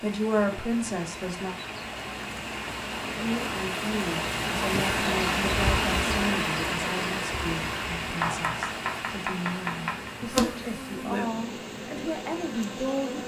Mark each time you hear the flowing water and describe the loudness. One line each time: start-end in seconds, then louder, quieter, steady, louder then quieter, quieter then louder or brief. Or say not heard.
0.0-13.2 louder then quieter.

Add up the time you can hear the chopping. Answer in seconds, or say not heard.
2 s.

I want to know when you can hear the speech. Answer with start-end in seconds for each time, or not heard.
0.0-1.6, 3.1-13.2.